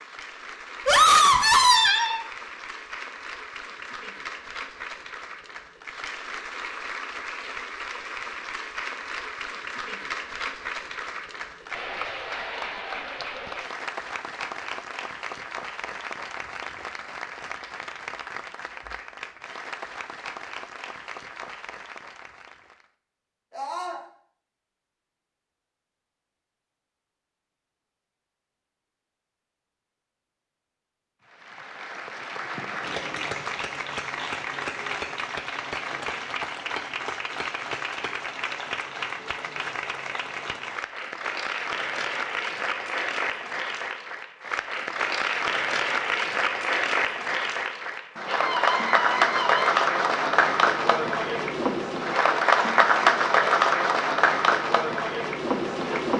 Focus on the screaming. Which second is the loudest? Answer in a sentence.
The volume of the screaming peaks at 1 second.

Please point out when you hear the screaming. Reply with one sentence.
You can hear the screaming from 0.8 to 2.2 s, from 23.5 to 24.0 s and from 48.2 to 49.7 s.